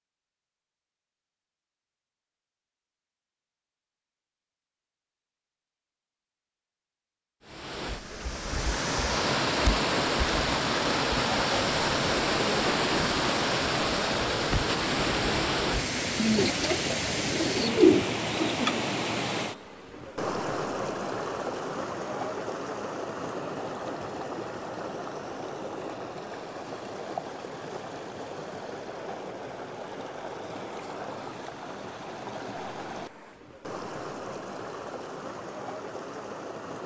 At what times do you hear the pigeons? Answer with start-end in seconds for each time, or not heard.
16.1-18.8.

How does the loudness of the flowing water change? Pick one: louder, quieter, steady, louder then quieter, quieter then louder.
quieter.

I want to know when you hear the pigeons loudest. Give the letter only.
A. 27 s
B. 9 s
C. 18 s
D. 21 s
C.